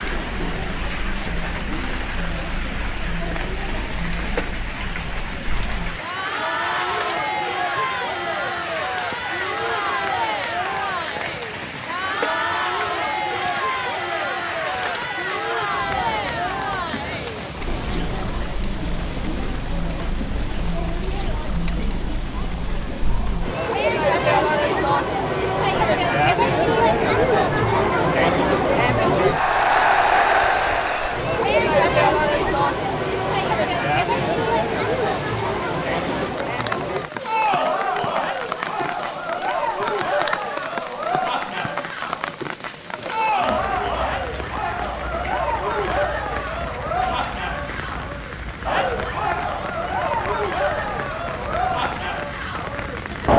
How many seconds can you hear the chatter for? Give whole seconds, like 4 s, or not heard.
53 s.